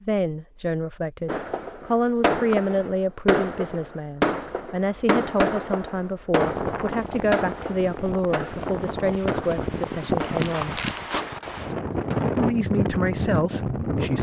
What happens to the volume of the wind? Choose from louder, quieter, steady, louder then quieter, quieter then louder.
louder.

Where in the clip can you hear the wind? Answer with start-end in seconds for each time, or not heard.
6.3-14.1.